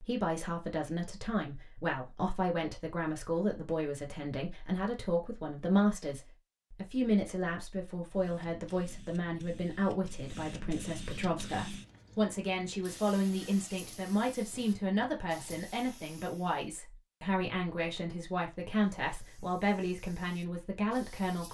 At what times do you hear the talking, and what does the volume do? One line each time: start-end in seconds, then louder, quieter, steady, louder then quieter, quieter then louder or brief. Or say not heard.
0.0-21.4 steady.